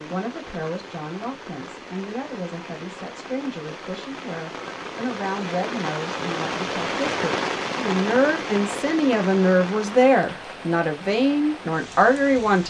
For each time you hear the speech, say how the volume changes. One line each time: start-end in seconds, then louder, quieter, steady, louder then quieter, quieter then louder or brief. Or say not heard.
0.0-12.6 louder.